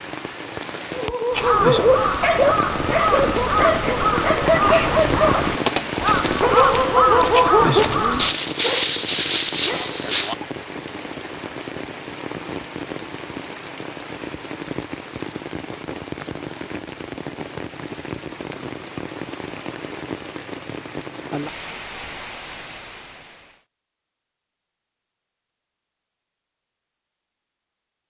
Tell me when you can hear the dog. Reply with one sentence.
The dog can be heard from 0.9 to 10.4 s.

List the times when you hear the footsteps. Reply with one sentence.
The footsteps can't be heard in this clip.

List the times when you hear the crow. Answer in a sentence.
The crow can be heard from 1.3 to 8.3 s.